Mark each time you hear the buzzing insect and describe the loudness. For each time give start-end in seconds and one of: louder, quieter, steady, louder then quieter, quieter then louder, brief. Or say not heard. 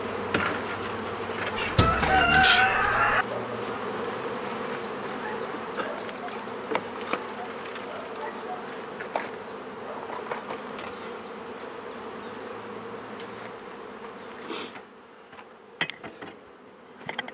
0.0-17.3 quieter.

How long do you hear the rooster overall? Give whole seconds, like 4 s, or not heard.
2 s.